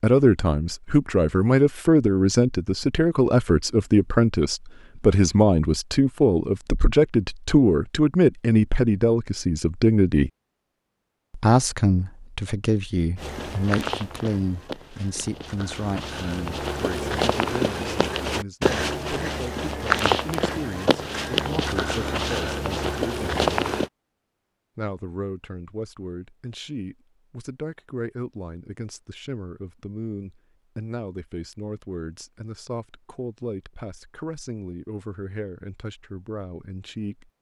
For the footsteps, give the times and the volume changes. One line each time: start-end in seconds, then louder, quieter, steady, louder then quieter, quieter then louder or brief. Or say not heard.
13.2-23.9 louder.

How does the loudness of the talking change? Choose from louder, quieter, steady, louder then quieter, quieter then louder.
quieter.